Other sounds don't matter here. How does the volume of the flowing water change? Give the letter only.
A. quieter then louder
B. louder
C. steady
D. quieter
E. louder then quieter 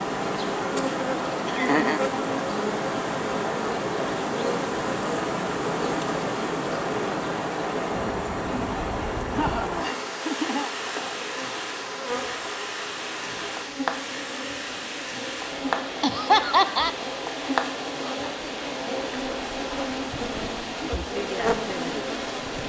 C.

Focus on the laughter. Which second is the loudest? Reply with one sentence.
The volume of the laughter peaks at 16 seconds.